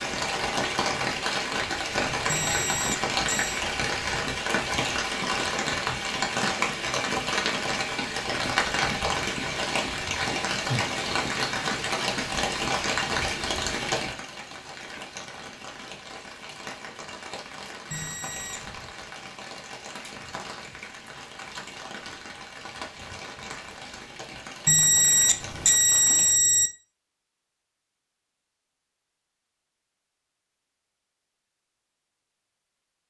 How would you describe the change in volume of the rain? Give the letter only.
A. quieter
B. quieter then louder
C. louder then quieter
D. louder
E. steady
A.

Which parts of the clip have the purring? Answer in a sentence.
You can't hear the purring here.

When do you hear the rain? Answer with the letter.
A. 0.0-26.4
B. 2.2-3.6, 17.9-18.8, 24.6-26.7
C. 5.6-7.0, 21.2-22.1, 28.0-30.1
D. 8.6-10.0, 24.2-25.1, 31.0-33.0
A.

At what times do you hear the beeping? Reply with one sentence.
You can hear the beeping from 2.2 to 3.6 s, from 17.9 to 18.8 s and from 24.6 to 26.7 s.